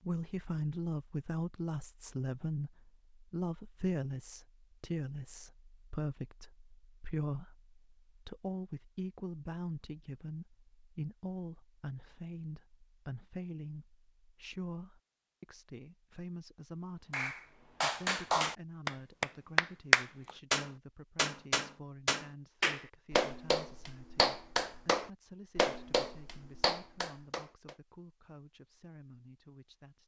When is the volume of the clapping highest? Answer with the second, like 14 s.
20 s.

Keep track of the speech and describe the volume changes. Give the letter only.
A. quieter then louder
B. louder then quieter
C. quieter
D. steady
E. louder
C.